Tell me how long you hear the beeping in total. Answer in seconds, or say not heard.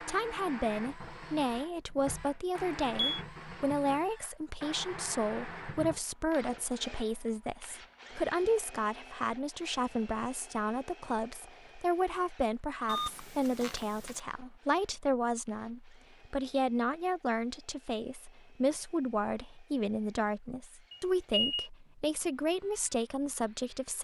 3 s.